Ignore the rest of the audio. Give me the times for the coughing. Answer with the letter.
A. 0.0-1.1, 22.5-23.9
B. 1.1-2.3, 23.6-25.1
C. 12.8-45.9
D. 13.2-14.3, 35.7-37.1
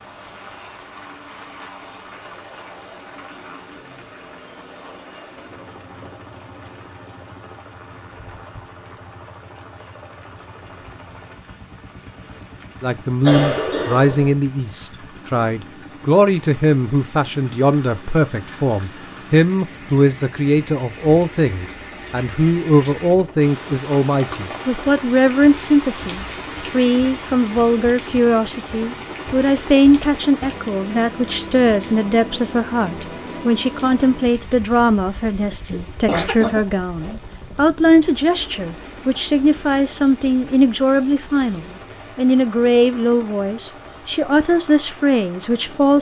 D.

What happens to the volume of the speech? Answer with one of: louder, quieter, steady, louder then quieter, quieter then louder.
steady.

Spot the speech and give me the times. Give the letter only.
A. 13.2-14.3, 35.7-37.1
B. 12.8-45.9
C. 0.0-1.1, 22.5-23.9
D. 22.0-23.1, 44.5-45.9
B.